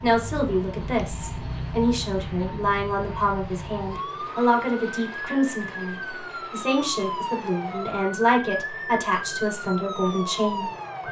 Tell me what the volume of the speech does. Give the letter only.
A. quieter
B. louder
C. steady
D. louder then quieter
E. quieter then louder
C.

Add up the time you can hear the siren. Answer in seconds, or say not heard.
11 s.